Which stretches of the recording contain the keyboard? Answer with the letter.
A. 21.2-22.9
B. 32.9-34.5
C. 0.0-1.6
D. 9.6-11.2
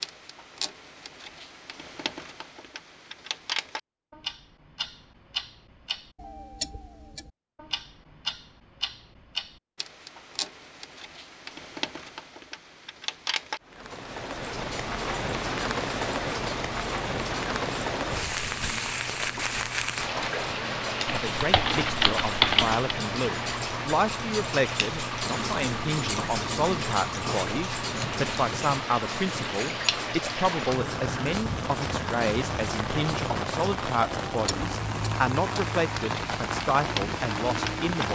A.